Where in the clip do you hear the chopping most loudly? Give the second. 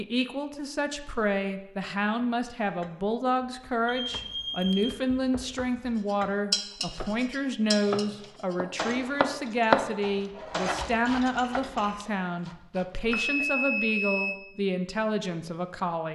10 s.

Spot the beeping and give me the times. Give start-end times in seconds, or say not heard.
3.9-5.0, 13.1-14.3.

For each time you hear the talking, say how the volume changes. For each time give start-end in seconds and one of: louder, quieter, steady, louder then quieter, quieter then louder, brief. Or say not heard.
0.0-16.1 steady.